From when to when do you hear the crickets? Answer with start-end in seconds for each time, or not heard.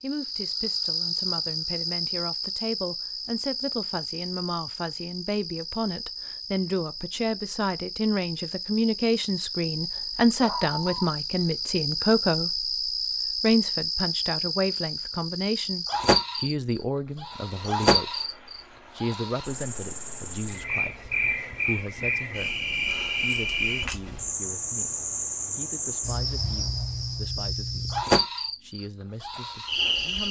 0.0-30.2.